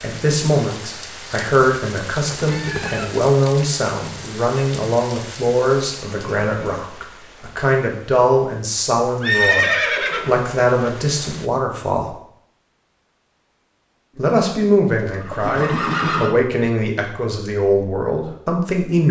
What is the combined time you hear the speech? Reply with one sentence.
You can hear the speech for 17 seconds altogether.